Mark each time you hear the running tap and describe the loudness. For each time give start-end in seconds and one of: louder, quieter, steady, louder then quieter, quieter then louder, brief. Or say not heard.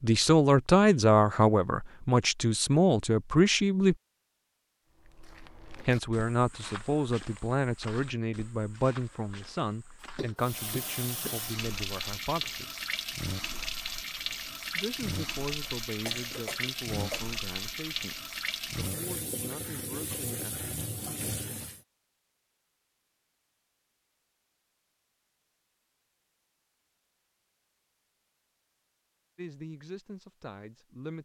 10.3-21.8 steady.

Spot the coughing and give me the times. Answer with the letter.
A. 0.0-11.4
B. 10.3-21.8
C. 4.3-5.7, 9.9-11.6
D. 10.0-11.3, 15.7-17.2
D.